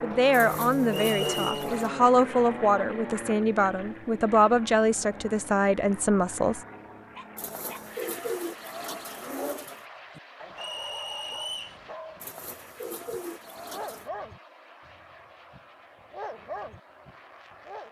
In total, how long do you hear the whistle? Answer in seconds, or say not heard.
2 s.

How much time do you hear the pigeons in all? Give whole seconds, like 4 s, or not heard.
6 s.